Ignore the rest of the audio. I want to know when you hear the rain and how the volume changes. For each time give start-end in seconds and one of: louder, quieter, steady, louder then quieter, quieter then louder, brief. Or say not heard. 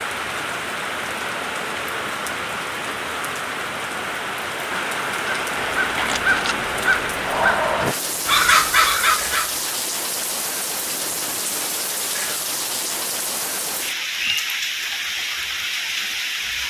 0.0-16.6 steady.